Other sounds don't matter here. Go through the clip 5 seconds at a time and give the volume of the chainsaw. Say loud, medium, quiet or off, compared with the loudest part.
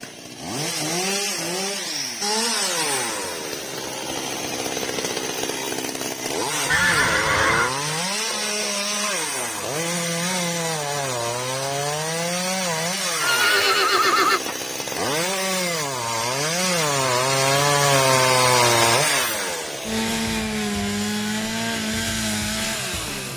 medium, medium, medium, loud, medium.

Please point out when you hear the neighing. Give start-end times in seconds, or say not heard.
6.7-7.8, 13.2-14.4.